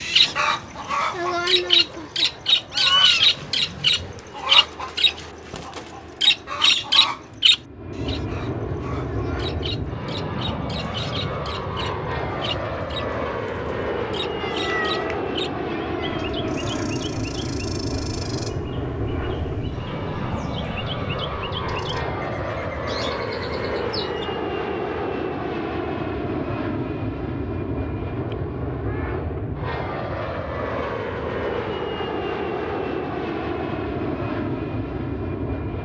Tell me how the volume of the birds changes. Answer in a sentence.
The volume of the birds goes down.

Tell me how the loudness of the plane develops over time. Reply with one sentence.
The volume of the plane goes up.